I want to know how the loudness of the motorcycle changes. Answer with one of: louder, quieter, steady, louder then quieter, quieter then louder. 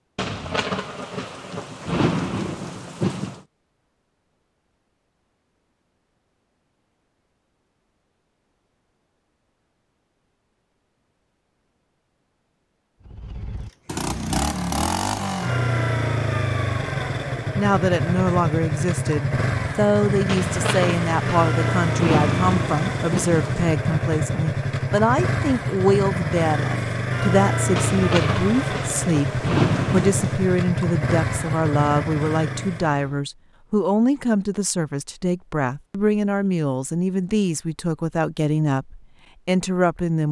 steady.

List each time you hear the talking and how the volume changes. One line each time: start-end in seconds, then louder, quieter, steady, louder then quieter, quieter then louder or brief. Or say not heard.
17.6-40.2 steady.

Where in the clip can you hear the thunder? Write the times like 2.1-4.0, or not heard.
0.1-3.4, 20.2-23.7, 27.8-30.4.